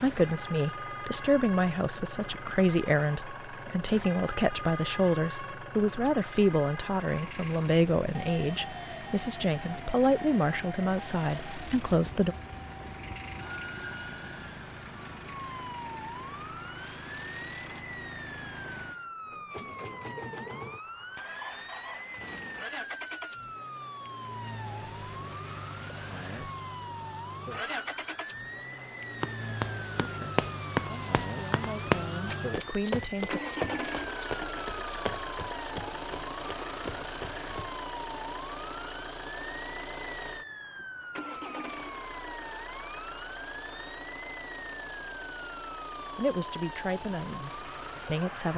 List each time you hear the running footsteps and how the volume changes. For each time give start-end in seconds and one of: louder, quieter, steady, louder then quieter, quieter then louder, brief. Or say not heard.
29.2-37.8 quieter.